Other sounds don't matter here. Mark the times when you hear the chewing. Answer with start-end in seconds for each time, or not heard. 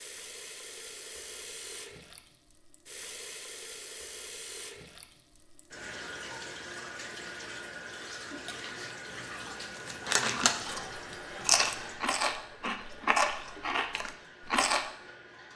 8.2-14.8.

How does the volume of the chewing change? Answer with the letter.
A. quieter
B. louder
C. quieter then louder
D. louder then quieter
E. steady
D.